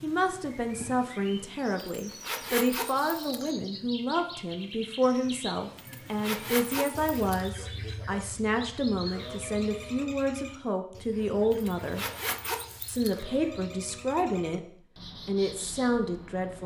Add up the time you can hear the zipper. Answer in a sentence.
The zipper can be heard for 5 seconds in total.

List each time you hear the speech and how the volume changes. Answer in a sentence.
The speech can be heard from 0.0 to 12.1 s, at a steady volume; briefly from 12.8 to 14.7 s; and briefly from 15.2 to 16.6 s.